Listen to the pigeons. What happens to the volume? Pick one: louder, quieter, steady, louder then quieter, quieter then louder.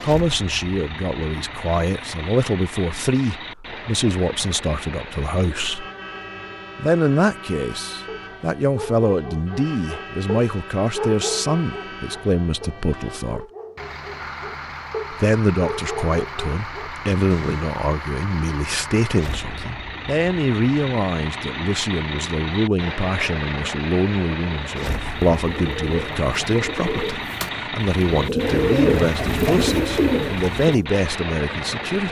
louder.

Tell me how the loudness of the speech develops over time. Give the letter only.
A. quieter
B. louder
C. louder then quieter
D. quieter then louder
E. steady
E.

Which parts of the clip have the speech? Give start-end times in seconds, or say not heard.
0.0-5.8, 6.8-13.4, 15.1-32.0.